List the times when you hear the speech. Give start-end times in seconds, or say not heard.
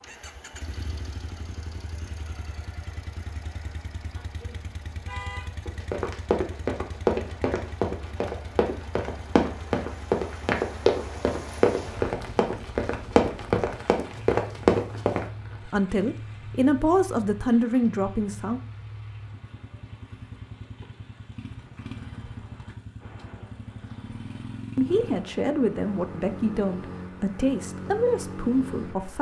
15.7-18.6, 24.8-29.1.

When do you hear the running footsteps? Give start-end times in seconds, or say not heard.
5.7-15.2.